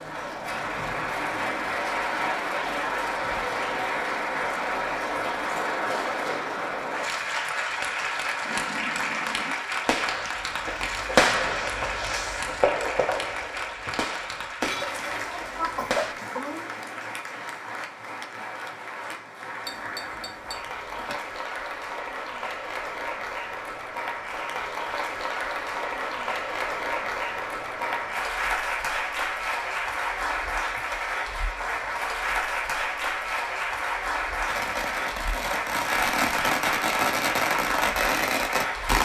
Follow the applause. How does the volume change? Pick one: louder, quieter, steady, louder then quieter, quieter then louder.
quieter then louder.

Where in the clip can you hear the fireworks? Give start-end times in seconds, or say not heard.
8.4-16.1, 34.5-39.0.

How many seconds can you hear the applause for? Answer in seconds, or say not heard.
39 s.